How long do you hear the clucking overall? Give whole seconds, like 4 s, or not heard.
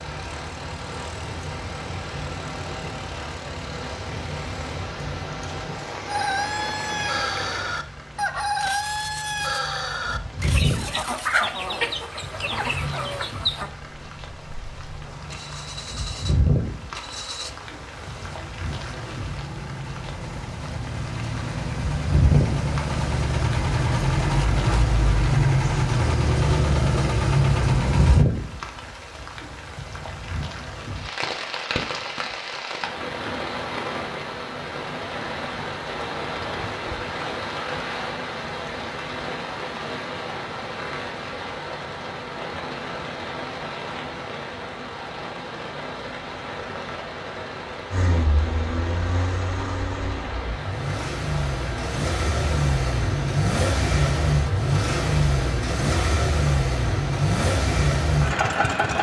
8 s.